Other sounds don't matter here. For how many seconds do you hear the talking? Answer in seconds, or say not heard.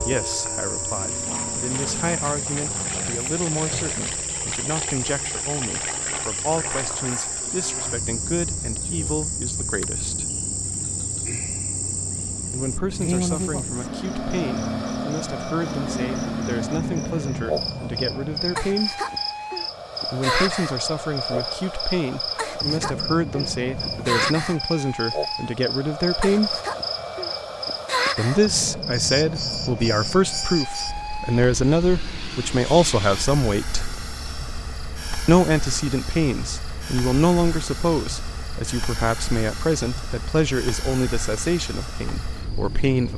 37 s.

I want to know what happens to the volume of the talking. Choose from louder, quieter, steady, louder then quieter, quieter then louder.
louder.